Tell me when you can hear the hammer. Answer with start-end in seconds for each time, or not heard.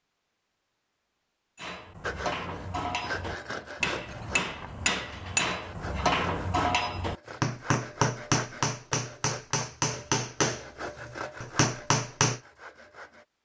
1.6-12.4.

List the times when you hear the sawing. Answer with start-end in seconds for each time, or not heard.
2.0-13.2.